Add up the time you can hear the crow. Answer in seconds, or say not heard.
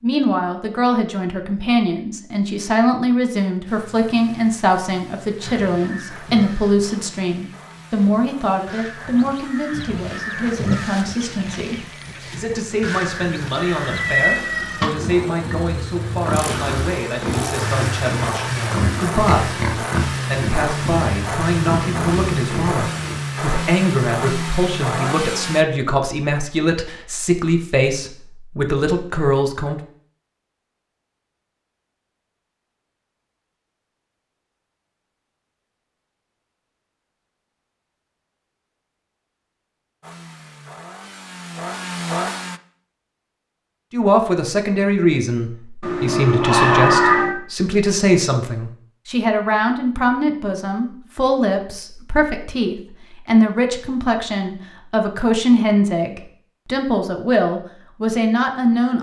9 s.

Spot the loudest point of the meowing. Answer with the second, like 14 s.
47 s.